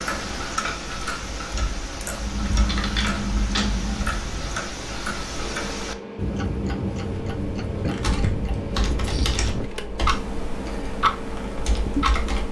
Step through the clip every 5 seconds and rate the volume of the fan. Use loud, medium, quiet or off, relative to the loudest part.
off, loud, loud.